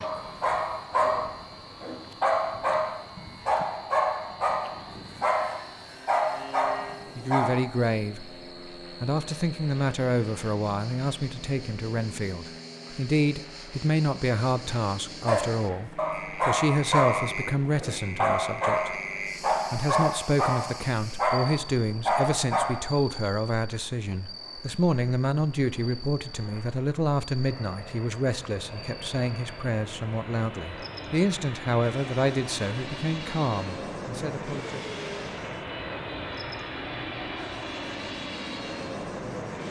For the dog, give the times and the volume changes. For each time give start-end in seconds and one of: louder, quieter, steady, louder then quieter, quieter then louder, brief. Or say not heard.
0.0-7.6 steady
15.2-22.7 steady.